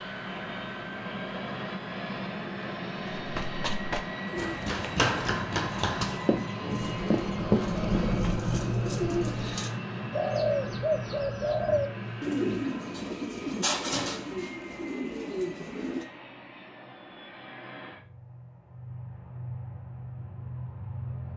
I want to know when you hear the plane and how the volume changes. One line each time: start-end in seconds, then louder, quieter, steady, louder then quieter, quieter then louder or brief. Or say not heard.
0.0-21.3 quieter.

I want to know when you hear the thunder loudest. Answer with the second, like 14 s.
8 s.